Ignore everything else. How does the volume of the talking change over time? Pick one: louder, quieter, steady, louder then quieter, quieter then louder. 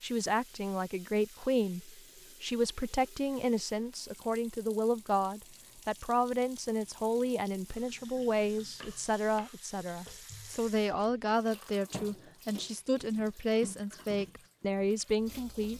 steady.